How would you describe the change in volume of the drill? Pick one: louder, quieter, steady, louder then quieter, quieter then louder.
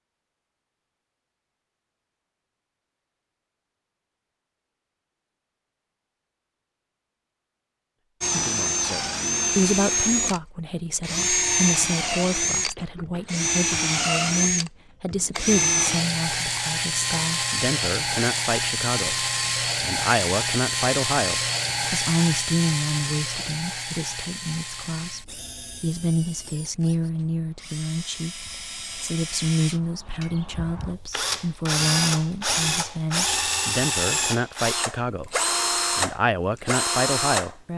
quieter then louder.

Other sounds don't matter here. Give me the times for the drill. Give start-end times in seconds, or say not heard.
8.2-37.5.